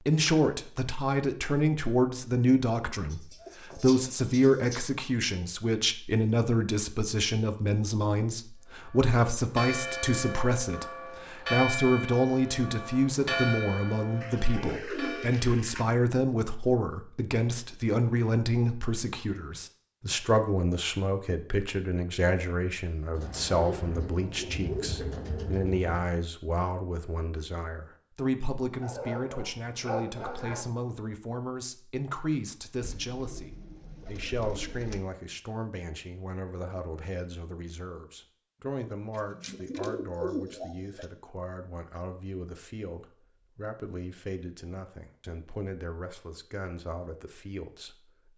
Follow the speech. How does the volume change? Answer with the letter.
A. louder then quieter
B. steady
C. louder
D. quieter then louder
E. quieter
E.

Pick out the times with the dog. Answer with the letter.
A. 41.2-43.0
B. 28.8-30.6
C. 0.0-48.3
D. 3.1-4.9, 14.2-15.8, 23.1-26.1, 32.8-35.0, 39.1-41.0
B.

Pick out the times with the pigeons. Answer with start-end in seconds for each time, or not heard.
3.1-4.9, 14.2-15.8, 23.1-26.1, 32.8-35.0, 39.1-41.0.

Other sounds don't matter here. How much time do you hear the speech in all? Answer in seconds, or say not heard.
48 s.